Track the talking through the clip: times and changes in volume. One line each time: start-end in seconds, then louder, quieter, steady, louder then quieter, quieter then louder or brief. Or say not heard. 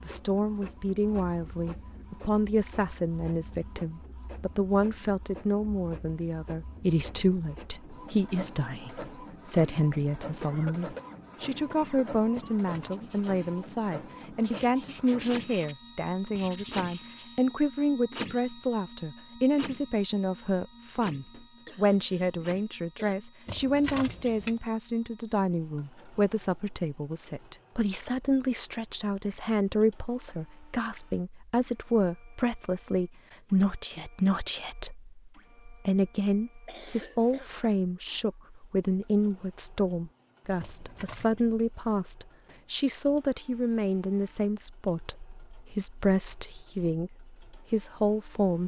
0.1-48.6 steady.